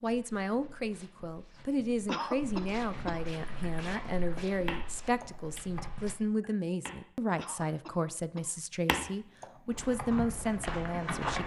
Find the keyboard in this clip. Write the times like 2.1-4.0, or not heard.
3.4-7.0, 8.8-11.4.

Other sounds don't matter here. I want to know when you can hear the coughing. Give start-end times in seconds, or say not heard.
2.0-3.2, 7.3-8.6.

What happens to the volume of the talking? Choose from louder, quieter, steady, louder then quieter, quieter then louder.
steady.